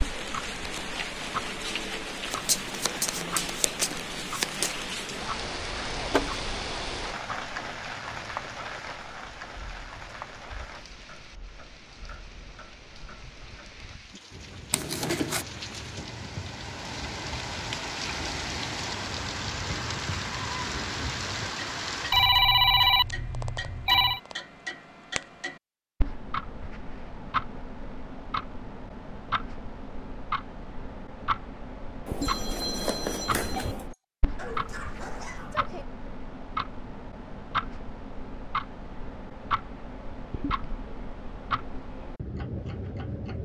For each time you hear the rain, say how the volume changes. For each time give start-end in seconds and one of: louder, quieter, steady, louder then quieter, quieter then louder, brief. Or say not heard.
0.0-22.3 quieter then louder.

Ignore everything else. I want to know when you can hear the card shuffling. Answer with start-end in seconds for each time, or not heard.
2.3-4.8, 14.7-15.4, 32.0-33.9.